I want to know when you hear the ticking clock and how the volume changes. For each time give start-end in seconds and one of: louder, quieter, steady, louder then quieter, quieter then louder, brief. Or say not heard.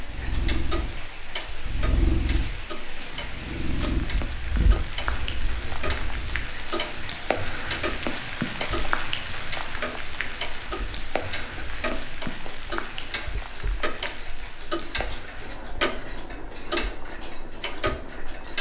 0.0-18.5 louder.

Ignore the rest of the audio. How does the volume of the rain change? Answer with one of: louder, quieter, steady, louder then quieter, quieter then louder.
louder then quieter.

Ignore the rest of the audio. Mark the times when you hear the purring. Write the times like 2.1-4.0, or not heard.
0.0-6.5.